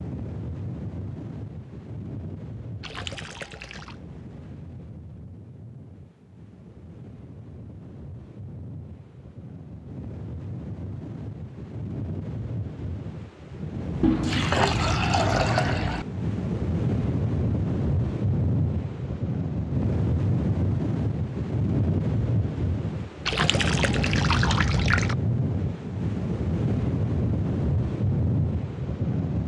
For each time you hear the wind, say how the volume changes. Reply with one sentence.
You can hear the wind from 0.0 to 29.4 s, getting louder.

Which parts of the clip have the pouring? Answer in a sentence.
The pouring can be heard from 2.8 to 4.0 s, from 14.0 to 16.1 s and from 23.2 to 25.1 s.